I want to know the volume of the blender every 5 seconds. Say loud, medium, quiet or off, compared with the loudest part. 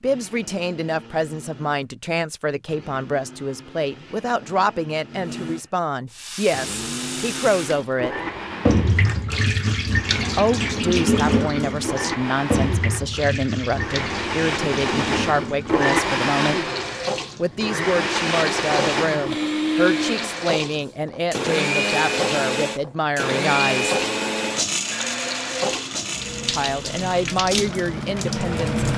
quiet, medium, medium, loud, loud, medium.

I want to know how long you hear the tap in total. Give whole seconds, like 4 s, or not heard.
23 s.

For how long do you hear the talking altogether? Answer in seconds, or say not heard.
23 s.